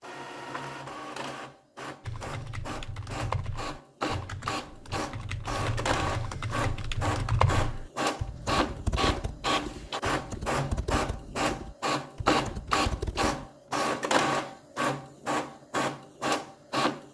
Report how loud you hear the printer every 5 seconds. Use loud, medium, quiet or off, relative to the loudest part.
medium, loud, loud, loud.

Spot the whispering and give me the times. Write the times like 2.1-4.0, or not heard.
not heard.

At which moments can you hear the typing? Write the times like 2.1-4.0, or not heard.
2.0-13.3.